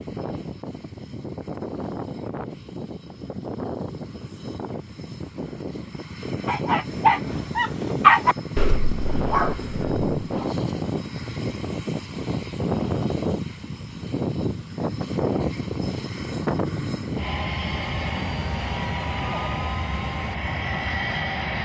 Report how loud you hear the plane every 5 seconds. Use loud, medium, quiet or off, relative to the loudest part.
medium, loud, loud, loud, loud.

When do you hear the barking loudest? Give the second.
8 s.